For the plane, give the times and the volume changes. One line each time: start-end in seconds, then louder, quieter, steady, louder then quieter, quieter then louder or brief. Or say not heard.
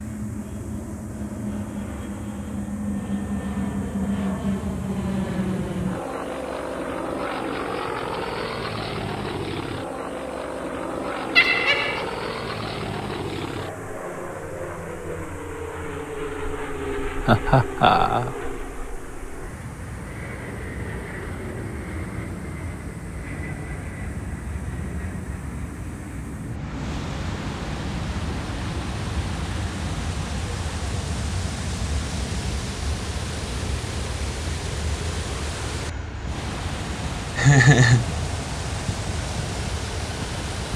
0.0-40.7 quieter.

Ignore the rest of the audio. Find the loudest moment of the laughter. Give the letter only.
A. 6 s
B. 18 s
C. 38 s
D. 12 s
C.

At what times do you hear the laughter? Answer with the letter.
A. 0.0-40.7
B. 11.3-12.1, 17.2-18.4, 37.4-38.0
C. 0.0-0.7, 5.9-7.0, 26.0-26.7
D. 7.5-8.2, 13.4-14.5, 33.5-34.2
B.